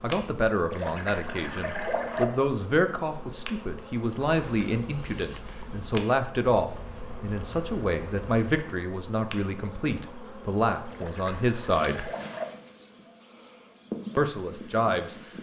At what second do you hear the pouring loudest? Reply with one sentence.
The volume of the pouring peaks at 2 seconds.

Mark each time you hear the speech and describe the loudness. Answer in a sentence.
The speech can be heard from 0.0 to 12.1 s, at a steady volume; and briefly from 14.2 to 15.2 s.